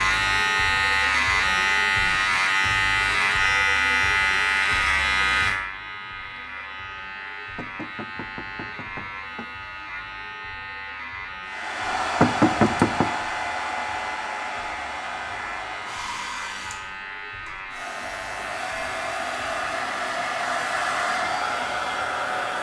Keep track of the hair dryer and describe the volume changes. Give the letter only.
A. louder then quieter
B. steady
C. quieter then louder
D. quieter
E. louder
C.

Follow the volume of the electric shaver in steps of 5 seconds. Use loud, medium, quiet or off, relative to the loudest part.
loud, medium, quiet, quiet, quiet.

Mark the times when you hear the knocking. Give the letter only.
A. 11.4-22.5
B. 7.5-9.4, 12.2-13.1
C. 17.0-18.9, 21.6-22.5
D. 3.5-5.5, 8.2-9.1
B.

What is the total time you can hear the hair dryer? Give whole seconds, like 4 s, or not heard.
11 s.